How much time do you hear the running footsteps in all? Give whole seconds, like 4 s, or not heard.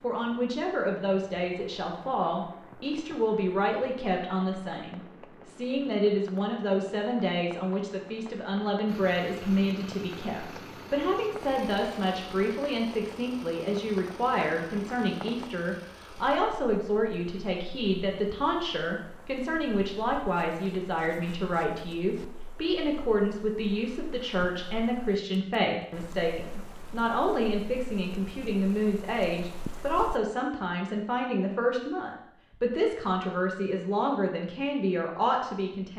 not heard.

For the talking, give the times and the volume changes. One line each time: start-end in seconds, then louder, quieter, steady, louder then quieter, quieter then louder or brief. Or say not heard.
0.0-35.9 steady.